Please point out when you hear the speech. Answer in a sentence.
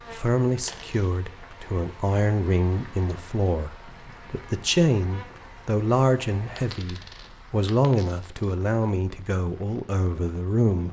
You can hear the speech from 0.1 to 10.8 s.